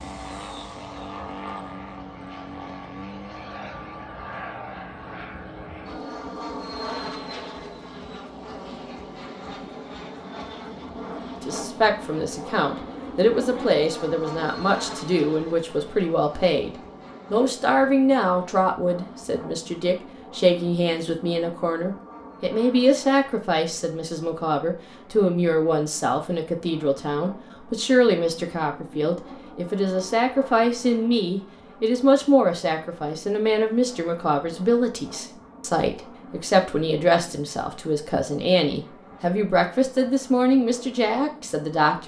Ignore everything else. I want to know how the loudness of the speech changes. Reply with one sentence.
The volume of the speech stays about the same.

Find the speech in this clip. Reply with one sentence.
You can hear the speech from 11.4 to 42.0 s.